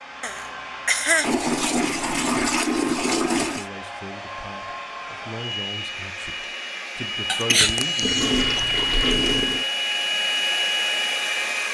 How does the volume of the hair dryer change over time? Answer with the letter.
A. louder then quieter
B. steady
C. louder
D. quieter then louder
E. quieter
C.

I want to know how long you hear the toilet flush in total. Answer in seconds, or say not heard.
4 s.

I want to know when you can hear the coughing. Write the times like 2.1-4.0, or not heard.
0.2-1.3, 7.2-8.6.